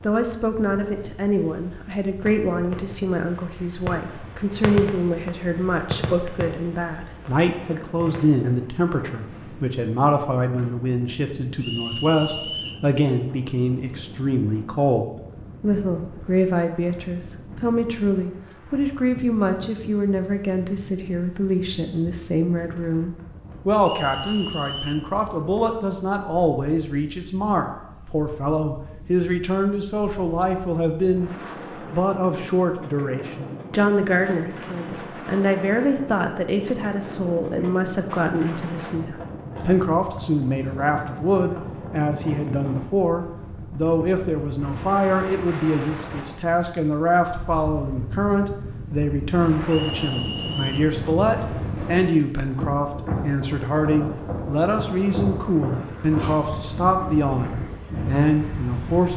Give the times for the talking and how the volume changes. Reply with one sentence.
The talking can be heard from 0.0 to 31.3 s, at a steady volume; and from 31.9 to 59.1 s, at a steady volume.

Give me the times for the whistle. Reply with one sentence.
The whistle can be heard from 11.6 to 12.8 s, from 23.8 to 25.1 s and from 49.6 to 50.9 s.